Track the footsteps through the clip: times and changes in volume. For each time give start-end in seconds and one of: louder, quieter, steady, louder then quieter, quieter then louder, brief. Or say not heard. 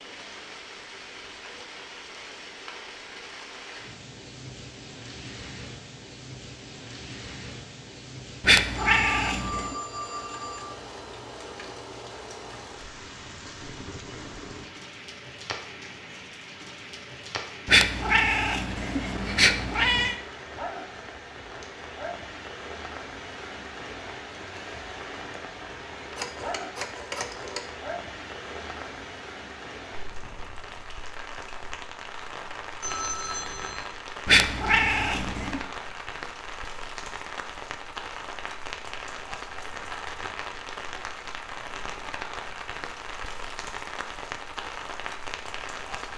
not heard.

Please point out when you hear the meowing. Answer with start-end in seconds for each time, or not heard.
8.4-9.8, 17.6-20.1, 34.2-35.6.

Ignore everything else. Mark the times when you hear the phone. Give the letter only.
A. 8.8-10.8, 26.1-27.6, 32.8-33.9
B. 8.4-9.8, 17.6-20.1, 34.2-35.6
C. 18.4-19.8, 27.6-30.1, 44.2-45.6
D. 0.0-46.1
A.